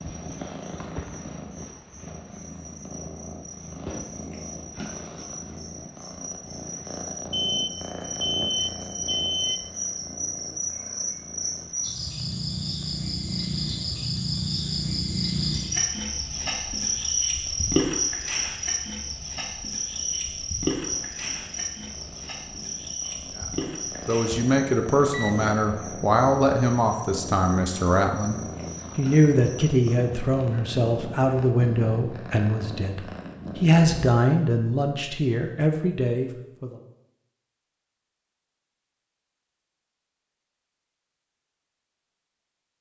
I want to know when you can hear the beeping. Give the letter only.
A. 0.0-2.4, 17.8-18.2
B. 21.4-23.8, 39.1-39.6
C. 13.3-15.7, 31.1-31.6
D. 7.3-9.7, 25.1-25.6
D.